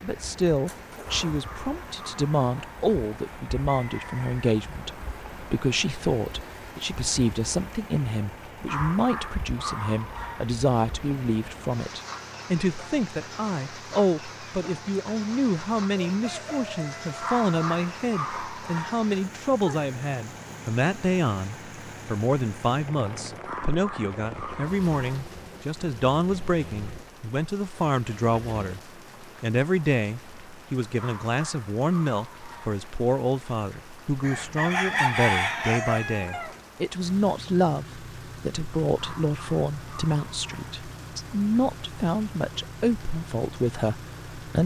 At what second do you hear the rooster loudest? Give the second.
35 s.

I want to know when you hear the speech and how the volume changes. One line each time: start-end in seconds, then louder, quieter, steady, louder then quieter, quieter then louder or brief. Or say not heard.
0.0-44.6 steady.